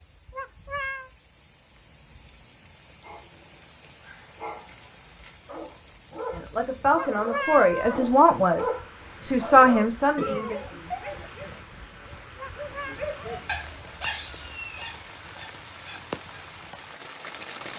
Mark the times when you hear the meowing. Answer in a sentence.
The meowing can be heard from 0.3 to 1.1 s, from 7.0 to 8.0 s and from 12.3 to 13.0 s.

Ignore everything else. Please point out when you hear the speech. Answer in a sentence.
The speech can be heard from 6.3 to 10.6 s.